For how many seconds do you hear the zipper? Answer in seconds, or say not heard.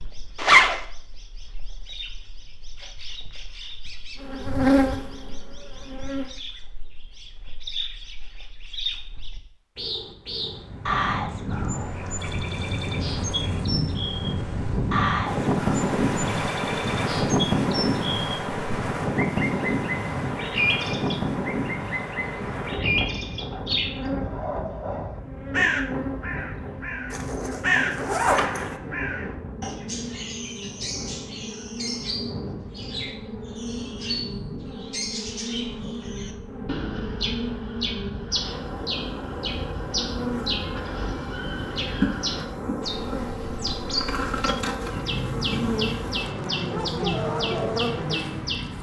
2 s.